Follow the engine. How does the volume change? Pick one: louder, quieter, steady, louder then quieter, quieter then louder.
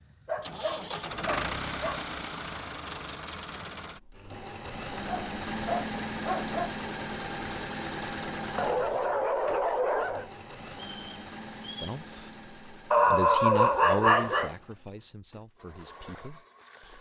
quieter.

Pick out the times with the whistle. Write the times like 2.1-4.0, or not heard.
10.7-12.0.